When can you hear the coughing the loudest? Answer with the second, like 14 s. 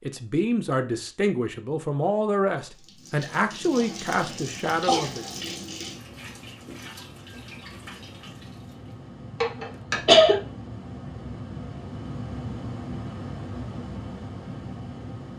10 s.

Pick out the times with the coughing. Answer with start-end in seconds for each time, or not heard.
3.8-5.2, 9.4-10.3.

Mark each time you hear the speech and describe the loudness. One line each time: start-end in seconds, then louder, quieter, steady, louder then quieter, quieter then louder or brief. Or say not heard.
0.0-5.2 steady.